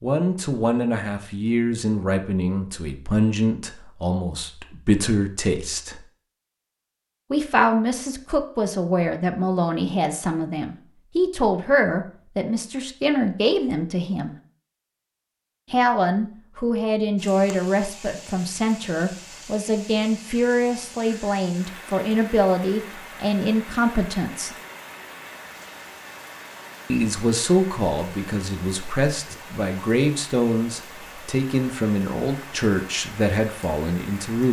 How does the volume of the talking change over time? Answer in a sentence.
The loudness of the talking stays about the same.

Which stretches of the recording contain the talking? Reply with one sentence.
You can hear the talking from 0.0 to 6.0 s, from 7.3 to 14.3 s, from 15.7 to 24.6 s and from 26.9 to 34.4 s.